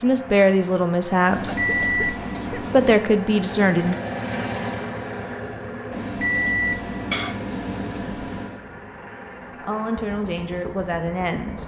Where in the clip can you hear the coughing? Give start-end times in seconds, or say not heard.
1.4-2.8, 7.1-8.1.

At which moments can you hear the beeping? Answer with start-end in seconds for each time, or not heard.
1.2-3.0, 5.9-8.6.